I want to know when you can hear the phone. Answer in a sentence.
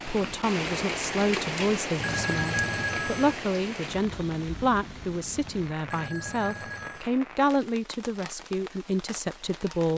You can hear the phone from 2.0 to 3.4 s and from 5.8 to 7.0 s.